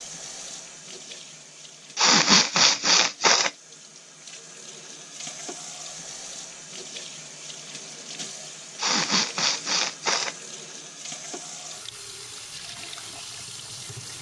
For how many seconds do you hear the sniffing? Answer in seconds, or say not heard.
3 s.